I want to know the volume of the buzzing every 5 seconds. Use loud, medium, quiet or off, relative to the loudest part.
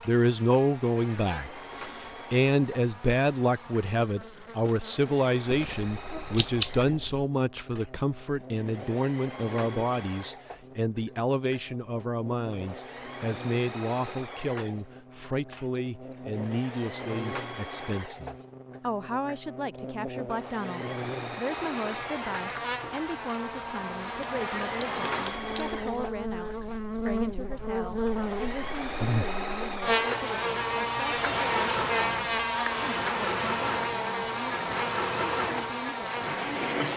quiet, quiet, quiet, quiet, medium, loud, loud, loud.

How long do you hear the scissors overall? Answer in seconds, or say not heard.
3 s.